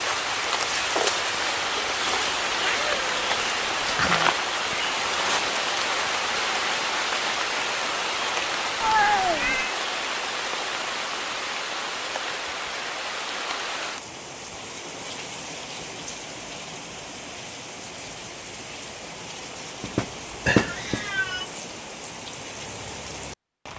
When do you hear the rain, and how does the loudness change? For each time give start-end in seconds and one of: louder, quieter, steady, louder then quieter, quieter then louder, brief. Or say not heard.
0.0-23.7 quieter.